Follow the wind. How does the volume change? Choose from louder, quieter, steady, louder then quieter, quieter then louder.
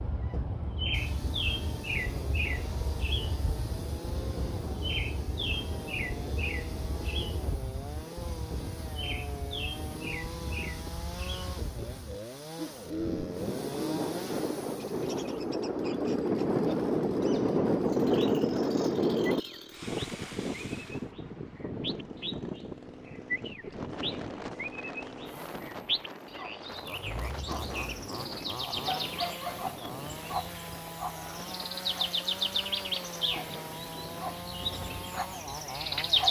louder then quieter.